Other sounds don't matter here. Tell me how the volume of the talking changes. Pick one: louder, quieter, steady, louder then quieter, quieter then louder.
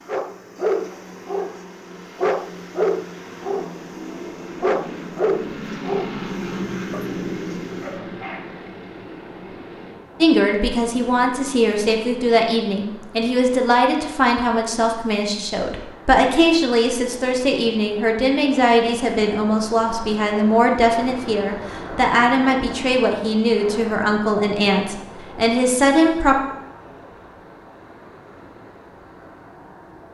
steady.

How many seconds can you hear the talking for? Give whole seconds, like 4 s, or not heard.
16 s.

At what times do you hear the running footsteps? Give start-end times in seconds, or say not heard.
not heard.